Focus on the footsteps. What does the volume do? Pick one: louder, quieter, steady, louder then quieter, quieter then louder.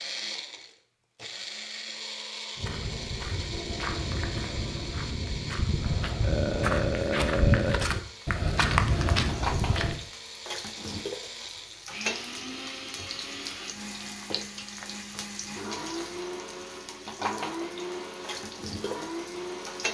louder.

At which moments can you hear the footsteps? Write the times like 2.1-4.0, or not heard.
2.5-10.0.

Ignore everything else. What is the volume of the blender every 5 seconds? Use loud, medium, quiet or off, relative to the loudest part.
loud, medium, loud, loud.